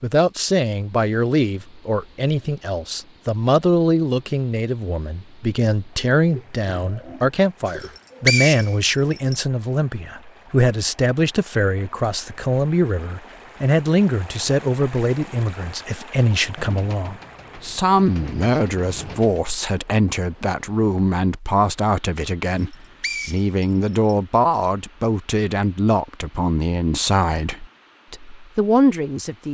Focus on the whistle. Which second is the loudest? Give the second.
8 s.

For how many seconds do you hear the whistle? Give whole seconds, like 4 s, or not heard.
3 s.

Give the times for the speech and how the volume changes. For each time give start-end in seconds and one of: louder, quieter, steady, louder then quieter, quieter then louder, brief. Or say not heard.
0.0-29.4 steady.